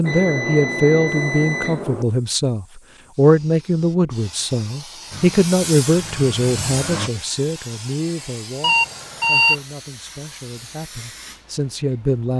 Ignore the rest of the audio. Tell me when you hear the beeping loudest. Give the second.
9 s.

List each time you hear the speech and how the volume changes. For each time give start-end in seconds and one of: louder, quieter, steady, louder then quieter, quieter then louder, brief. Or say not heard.
0.0-12.3 quieter.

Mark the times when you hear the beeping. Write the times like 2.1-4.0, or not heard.
0.0-2.0, 8.6-9.6.